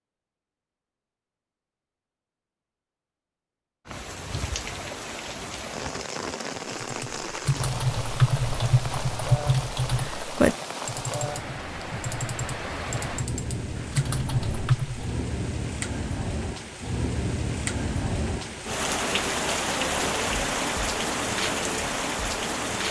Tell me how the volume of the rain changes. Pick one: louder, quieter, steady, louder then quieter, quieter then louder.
louder.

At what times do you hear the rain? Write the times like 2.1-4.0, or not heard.
3.9-22.8.